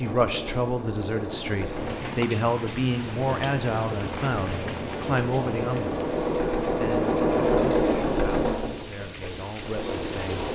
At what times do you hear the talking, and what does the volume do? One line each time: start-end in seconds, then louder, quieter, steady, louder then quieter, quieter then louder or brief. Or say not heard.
0.0-10.4 quieter.